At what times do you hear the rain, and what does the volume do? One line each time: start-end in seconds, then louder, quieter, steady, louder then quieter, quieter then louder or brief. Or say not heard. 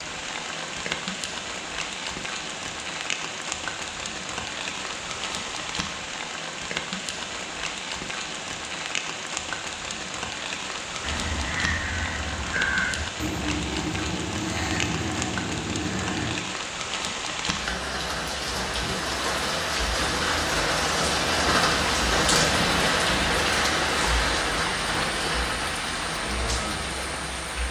0.0-27.6 louder.